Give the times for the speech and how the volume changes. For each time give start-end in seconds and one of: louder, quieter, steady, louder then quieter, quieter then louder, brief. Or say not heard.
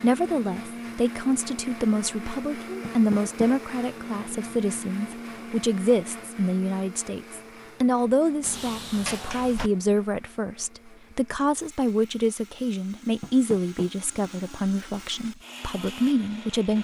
0.0-16.7 steady.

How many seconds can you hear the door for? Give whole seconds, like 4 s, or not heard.
3 s.